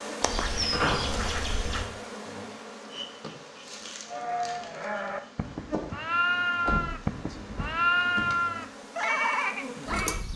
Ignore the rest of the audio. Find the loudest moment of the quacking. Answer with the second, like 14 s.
1 s.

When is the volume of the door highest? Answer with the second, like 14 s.
1 s.